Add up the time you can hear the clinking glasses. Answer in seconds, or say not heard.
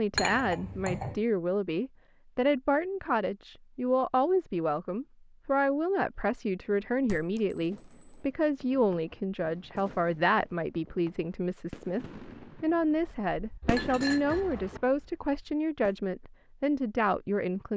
3 s.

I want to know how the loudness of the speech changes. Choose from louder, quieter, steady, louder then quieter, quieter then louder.
steady.